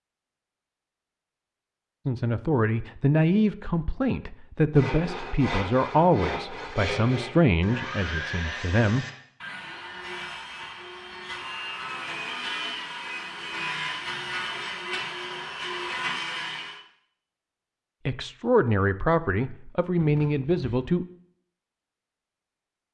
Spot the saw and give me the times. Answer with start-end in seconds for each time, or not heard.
4.8-16.8.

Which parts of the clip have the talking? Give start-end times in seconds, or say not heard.
2.0-9.1, 18.1-21.1.